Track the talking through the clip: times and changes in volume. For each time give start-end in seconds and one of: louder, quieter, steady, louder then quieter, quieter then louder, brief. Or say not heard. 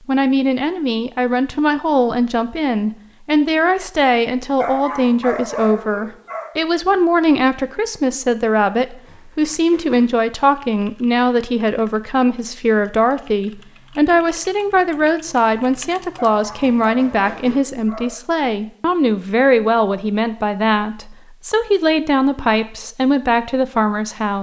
0.1-24.3 steady.